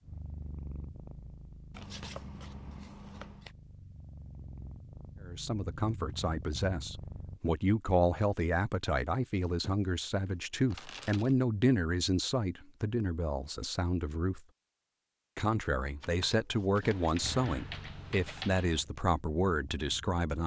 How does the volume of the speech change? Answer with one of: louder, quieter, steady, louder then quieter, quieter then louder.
steady.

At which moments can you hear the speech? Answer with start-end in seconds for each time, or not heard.
5.2-14.4, 15.3-20.4.